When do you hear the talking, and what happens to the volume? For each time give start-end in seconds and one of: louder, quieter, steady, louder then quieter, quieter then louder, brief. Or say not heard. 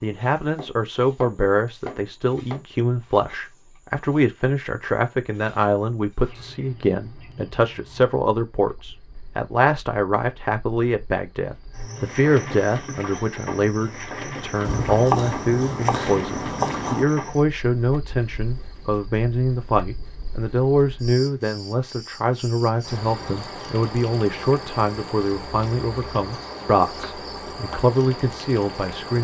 0.0-29.1 steady.